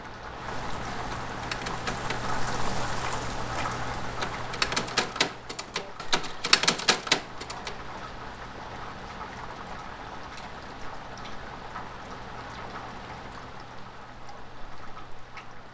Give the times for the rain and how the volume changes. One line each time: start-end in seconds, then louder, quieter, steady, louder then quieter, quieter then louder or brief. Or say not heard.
0.0-15.6 quieter.